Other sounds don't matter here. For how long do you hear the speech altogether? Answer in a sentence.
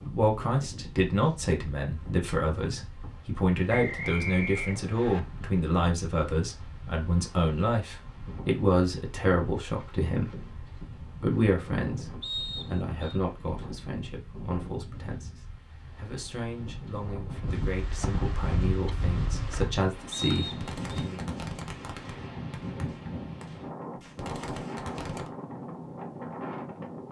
You can hear the speech for 21 seconds altogether.